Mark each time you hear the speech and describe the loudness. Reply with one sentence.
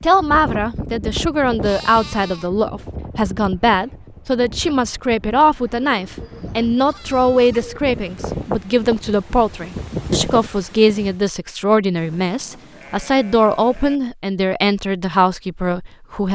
You can hear the speech from 0.0 to 16.3 s, at a steady volume.